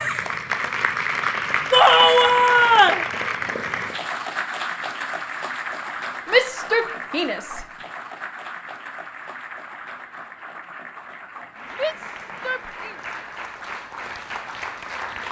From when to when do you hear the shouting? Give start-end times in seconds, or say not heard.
1.7-3.0, 6.3-7.7, 11.7-12.9.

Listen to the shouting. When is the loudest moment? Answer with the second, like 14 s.
2 s.